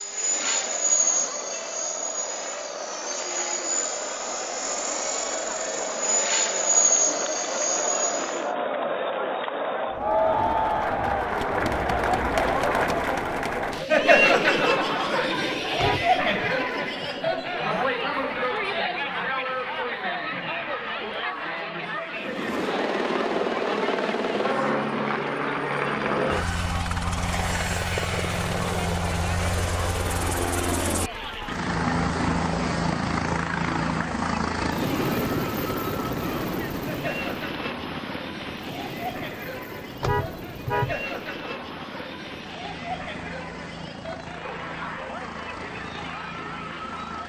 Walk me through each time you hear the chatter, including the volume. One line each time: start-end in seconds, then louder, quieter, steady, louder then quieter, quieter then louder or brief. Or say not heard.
0.0-47.2 louder then quieter.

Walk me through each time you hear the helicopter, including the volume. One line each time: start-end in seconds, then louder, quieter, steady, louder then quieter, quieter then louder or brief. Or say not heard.
0.0-8.4 quieter then louder
22.1-47.2 quieter.